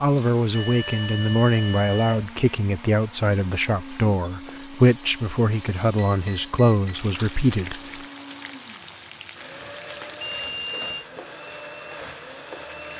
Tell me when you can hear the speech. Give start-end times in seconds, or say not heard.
0.0-7.8.